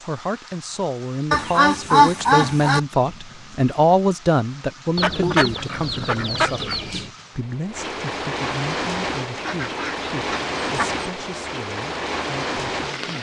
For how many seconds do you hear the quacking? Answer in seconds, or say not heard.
5 s.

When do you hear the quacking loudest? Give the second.
2 s.